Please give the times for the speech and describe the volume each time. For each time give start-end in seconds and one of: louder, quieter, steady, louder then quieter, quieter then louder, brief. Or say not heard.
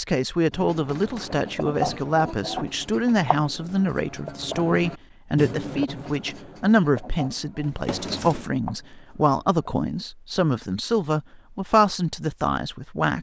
0.0-13.1 steady.